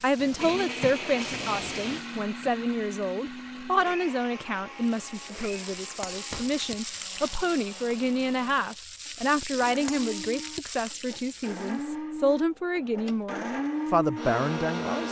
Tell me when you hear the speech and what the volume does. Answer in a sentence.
The speech can be heard from 0.0 to 15.0 s, at a steady volume.